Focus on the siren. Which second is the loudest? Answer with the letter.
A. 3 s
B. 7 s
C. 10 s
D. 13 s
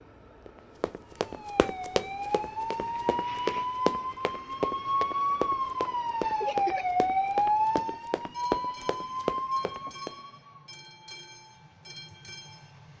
B.